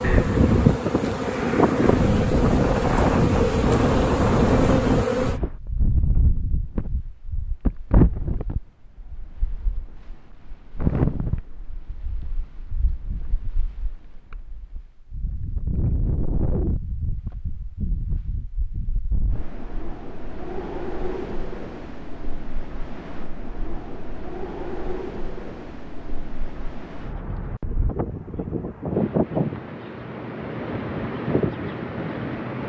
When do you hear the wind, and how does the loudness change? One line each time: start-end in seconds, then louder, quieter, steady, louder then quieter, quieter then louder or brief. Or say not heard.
0.0-32.6 quieter then louder.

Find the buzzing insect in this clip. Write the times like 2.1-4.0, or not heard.
0.0-5.4.